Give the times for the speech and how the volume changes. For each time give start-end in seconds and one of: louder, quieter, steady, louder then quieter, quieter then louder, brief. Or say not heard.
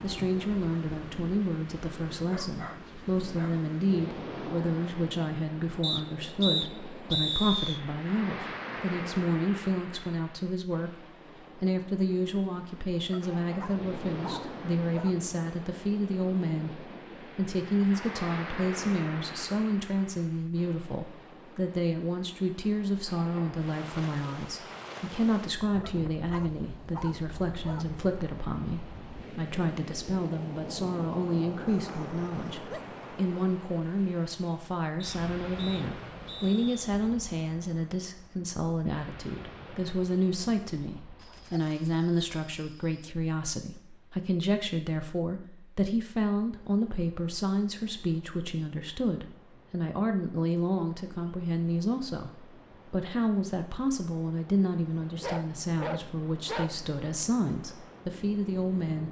0.0-59.0 steady.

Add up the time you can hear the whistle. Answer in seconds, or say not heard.
4 s.